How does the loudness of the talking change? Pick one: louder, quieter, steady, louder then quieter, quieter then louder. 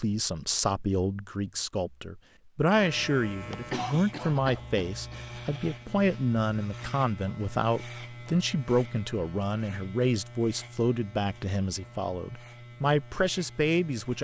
steady.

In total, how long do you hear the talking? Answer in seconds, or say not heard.
14 s.